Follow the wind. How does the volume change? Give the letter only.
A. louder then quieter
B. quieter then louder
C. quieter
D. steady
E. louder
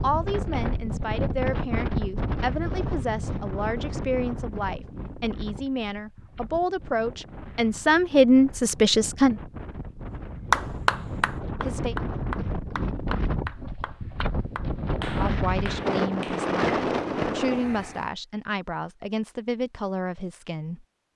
B.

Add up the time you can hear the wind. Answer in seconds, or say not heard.
18 s.